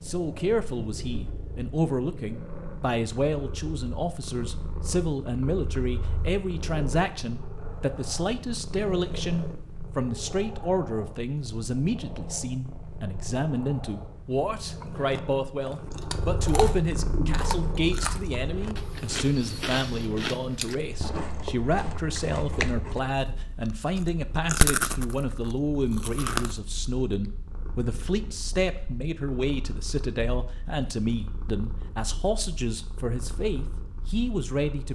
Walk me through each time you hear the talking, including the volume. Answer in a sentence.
The talking can be heard from 0.0 to 34.9 s, at a steady volume.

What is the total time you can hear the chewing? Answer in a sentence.
The chewing can be heard for 11 seconds in total.